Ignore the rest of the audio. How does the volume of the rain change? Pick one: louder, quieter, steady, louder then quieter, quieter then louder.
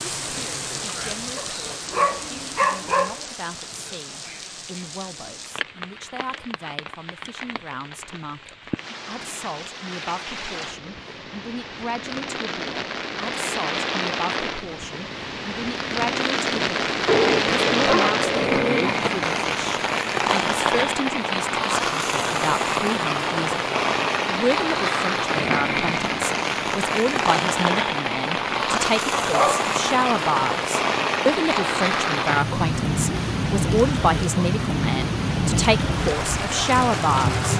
louder.